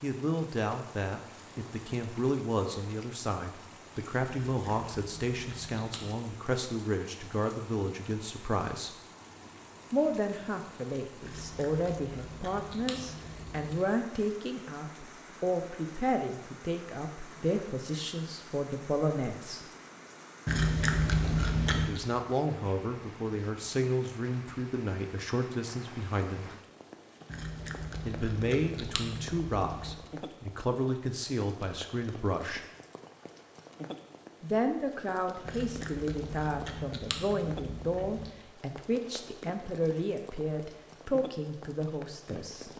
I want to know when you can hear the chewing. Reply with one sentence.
The chewing can be heard from 4.5 to 6.2 s, from 11.2 to 13.7 s, from 20.4 to 22.0 s, from 27.3 to 30.1 s and from 35.5 to 38.3 s.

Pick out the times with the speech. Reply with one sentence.
You can hear the speech from 0.0 to 8.9 s, from 9.9 to 19.6 s, from 21.9 to 26.4 s, from 28.1 to 32.6 s and from 34.4 to 42.7 s.